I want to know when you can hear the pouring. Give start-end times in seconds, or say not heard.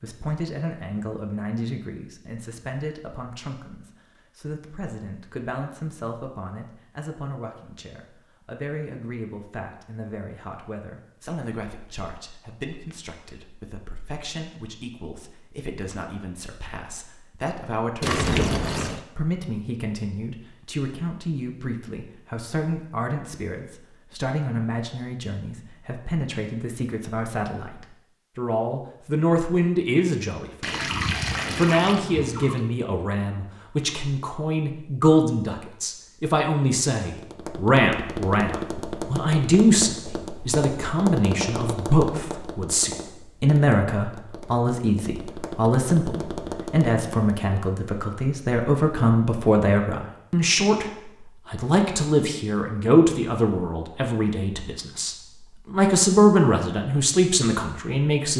18.0-19.0, 30.6-32.6.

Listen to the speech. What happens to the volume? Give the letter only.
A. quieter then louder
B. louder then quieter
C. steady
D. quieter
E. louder
E.